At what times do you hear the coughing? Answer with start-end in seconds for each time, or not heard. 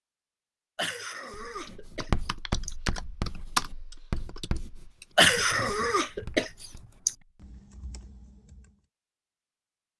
0.8-2.8, 5.2-7.2.